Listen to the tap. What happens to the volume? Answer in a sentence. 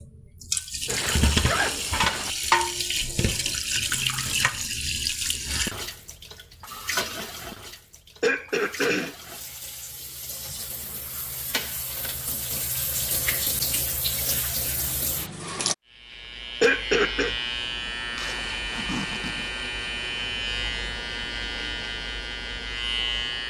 The volume of the tap goes down, then up.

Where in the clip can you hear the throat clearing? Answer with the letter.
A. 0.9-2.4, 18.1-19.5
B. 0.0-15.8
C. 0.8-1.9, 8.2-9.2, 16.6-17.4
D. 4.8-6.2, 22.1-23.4
C.